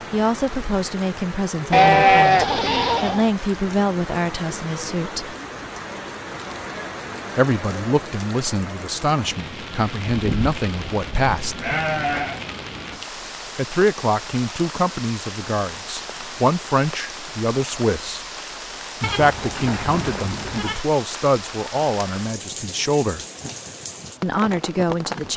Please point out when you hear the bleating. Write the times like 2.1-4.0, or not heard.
1.7-3.3, 10.1-12.4, 19.0-20.9.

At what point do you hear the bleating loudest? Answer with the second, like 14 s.
2 s.